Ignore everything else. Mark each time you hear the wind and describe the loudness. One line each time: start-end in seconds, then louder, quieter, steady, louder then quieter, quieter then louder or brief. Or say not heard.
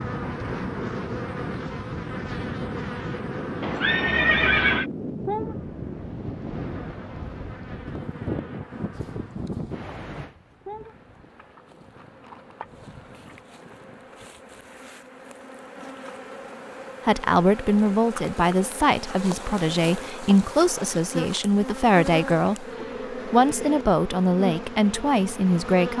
0.0-14.2 quieter.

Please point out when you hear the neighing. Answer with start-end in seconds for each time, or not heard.
3.6-4.8.